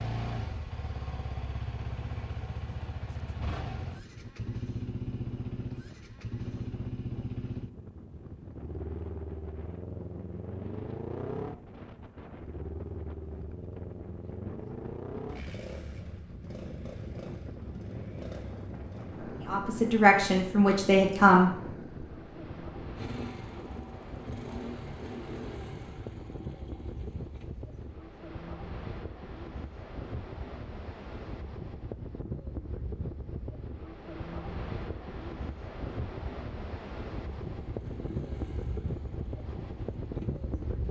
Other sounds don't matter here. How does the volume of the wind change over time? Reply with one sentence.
The volume of the wind goes up.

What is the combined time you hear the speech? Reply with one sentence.
You can hear the speech for 2 seconds altogether.